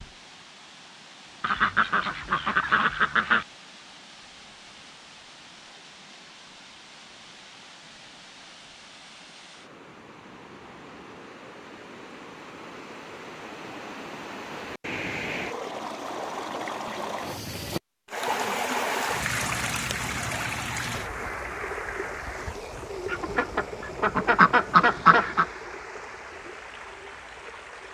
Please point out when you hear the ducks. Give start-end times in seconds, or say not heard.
1.4-3.5, 23.1-25.4.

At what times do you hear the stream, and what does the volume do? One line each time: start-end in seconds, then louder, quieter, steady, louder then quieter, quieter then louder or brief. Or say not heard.
0.0-27.8 louder then quieter.